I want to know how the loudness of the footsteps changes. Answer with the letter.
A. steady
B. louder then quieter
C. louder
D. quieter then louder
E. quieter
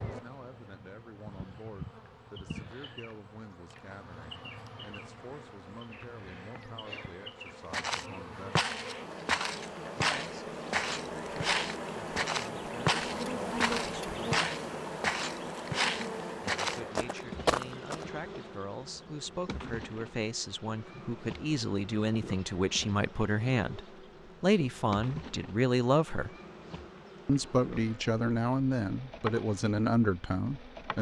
A.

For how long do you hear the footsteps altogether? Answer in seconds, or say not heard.
10 s.